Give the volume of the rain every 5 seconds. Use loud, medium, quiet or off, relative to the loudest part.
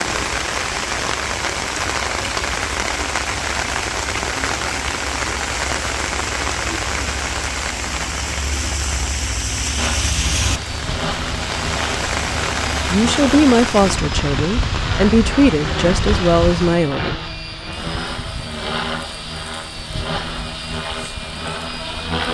loud, loud, loud, medium, quiet.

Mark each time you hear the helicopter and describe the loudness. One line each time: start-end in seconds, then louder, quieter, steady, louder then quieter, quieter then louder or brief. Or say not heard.
9.8-22.2 steady.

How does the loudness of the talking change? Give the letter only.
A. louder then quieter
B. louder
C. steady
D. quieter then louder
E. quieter
D.